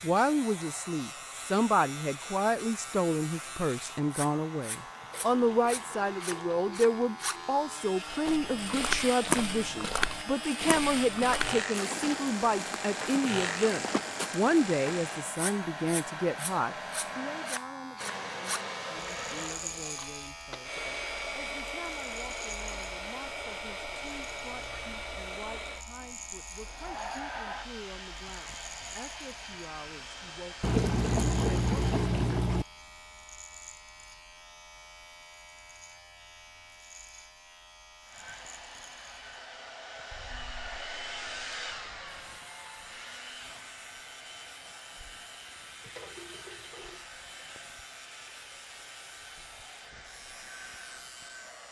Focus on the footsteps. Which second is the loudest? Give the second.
9 s.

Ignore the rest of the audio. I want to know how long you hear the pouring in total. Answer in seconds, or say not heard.
6 s.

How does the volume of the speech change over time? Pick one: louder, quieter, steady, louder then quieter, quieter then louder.
quieter.